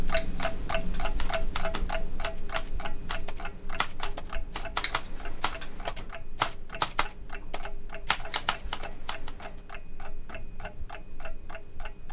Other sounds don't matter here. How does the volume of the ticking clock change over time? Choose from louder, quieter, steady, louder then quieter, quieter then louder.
quieter.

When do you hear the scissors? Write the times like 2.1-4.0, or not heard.
0.1-1.2, 4.8-5.8, 8.2-9.6.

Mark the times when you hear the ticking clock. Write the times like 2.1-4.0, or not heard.
0.0-12.0.